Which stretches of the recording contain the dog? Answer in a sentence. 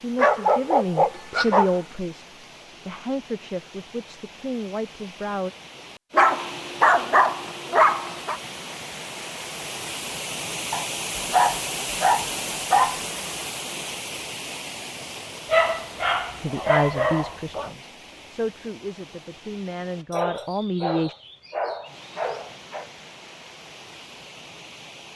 You can hear the dog from 0.1 to 1.8 s, from 6.1 to 8.4 s, from 10.7 to 13.0 s, from 15.5 to 17.7 s and from 20.1 to 22.9 s.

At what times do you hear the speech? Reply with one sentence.
You can hear the speech from 0.0 to 5.5 s and from 16.4 to 21.1 s.